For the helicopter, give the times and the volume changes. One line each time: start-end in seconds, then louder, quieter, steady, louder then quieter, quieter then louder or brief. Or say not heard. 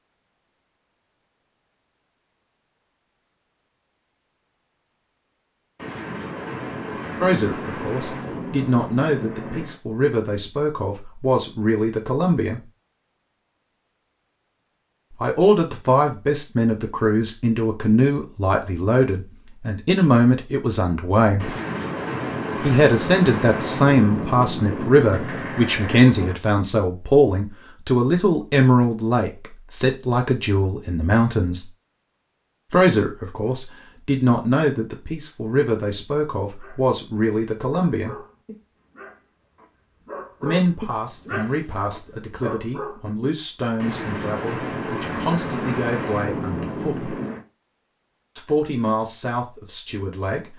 not heard.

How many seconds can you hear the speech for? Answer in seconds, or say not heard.
35 s.